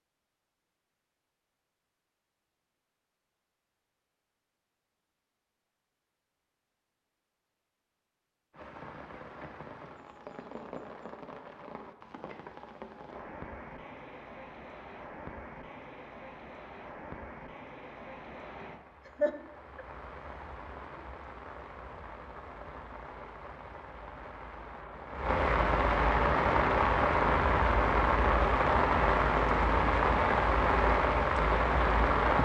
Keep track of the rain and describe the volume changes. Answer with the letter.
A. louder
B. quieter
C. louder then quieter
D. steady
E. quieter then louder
A.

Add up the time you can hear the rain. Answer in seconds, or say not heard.
24 s.